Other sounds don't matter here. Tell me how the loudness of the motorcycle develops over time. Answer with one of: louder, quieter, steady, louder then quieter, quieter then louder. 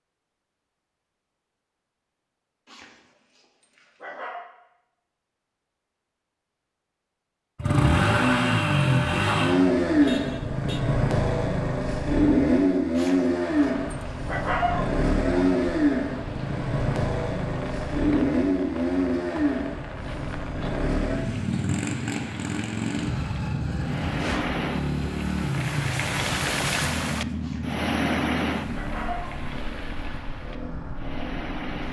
quieter.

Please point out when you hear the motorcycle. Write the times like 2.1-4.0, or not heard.
7.5-31.8.